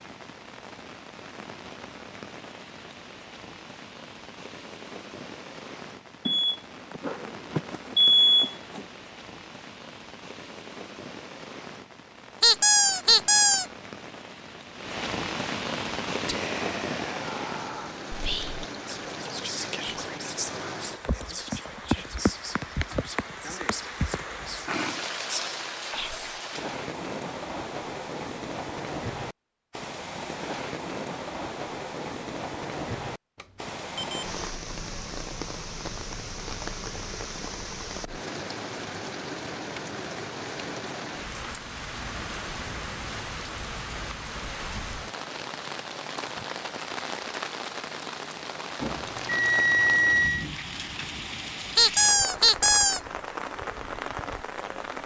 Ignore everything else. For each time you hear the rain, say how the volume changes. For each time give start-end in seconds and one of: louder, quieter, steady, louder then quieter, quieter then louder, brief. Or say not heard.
0.0-55.0 louder.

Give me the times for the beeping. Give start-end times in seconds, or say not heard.
6.2-8.8, 33.4-34.3, 48.8-50.5.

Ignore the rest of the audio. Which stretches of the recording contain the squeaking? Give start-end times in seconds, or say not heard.
12.4-13.7, 51.8-53.0.